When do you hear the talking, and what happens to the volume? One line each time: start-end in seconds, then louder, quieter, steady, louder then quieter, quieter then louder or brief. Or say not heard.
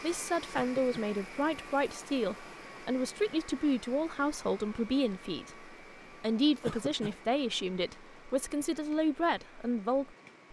0.0-10.4 steady.